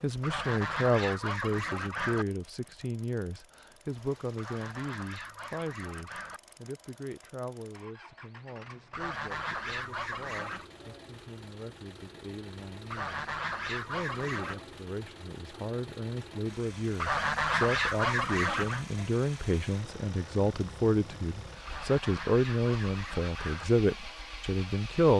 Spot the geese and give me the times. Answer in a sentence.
The geese can be heard from 0.2 to 2.2 s, from 4.3 to 6.4 s, from 8.9 to 10.7 s, from 12.9 to 14.7 s, from 16.9 to 18.9 s and from 21.6 to 23.6 s.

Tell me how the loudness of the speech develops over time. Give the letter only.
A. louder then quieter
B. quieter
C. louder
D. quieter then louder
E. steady
D.